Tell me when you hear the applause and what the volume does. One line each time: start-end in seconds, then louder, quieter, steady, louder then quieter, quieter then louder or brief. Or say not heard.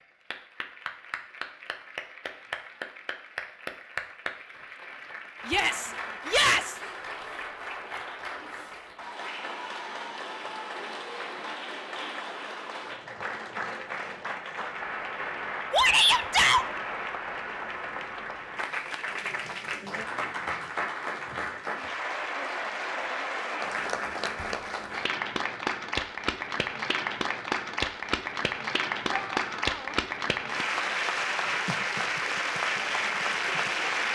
0.0-34.1 louder.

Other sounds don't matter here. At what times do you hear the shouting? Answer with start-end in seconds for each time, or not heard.
5.5-6.8, 15.7-16.6, 29.1-29.9.